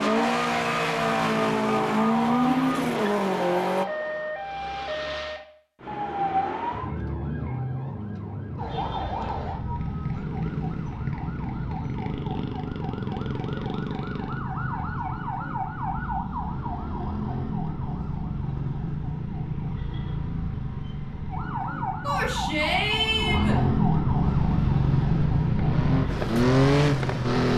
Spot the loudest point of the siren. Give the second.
24 s.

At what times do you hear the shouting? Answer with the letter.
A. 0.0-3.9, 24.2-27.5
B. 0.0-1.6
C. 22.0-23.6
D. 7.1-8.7
C.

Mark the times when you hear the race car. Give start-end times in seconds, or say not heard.
0.0-3.9, 24.2-27.5.